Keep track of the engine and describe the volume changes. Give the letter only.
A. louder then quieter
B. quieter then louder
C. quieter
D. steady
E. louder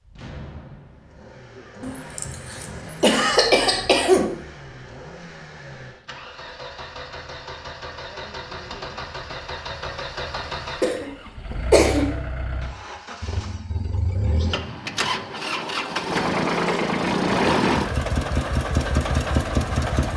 E.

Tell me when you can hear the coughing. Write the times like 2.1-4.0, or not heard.
1.8-4.2, 10.8-12.1.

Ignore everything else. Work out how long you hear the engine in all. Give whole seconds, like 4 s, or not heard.
20 s.